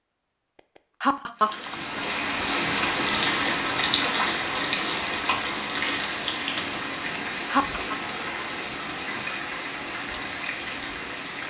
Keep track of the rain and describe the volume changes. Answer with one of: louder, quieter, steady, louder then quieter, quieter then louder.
quieter.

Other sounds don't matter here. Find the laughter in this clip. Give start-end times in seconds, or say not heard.
1.0-2.0, 7.5-8.0.